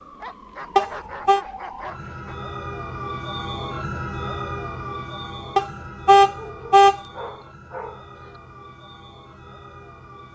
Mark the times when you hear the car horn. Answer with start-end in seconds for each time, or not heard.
0.8-1.4, 5.5-7.0.